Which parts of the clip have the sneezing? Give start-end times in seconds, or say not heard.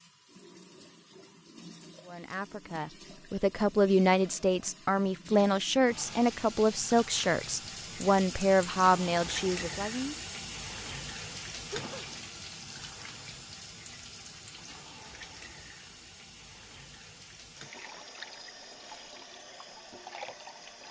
11.7-12.2.